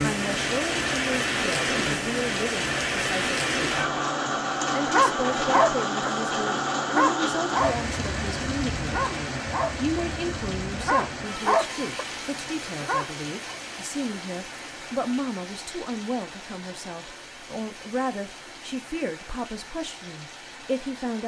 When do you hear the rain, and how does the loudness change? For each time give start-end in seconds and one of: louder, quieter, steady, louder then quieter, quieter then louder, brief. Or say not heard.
0.0-21.2 quieter.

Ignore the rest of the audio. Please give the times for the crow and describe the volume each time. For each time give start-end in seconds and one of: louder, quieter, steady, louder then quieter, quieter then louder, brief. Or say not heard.
not heard.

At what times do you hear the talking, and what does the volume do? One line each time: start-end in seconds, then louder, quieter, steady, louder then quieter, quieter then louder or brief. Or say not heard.
0.0-21.2 steady.